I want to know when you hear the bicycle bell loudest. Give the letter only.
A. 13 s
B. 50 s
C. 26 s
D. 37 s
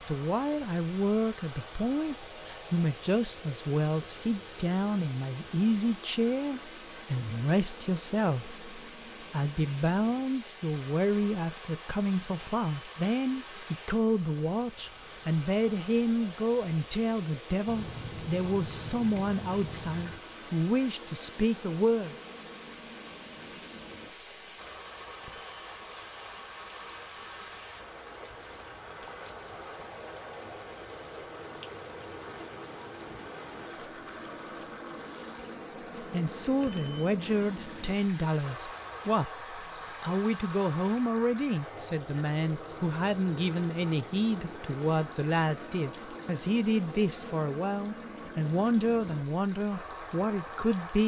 D.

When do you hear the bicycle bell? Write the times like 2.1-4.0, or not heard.
12.4-12.9, 25.2-25.6, 36.6-37.1.